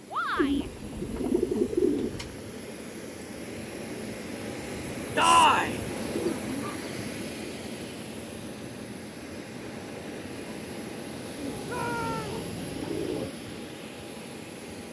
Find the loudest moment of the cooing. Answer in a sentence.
The loudest moment of the cooing is at 2 seconds.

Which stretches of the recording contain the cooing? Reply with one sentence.
You can hear the cooing from 0.3 to 2.4 s, from 6.1 to 7.2 s and from 11.3 to 13.3 s.